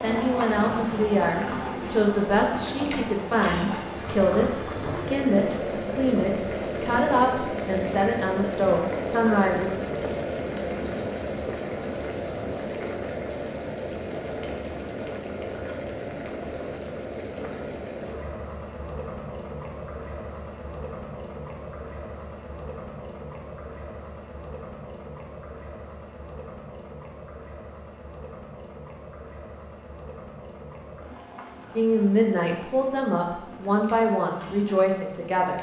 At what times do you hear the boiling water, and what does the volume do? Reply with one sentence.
The boiling water can be heard from 0.0 to 35.5 s, getting quieter.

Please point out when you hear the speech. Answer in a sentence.
The speech can be heard from 0.0 to 9.7 s and from 31.8 to 35.5 s.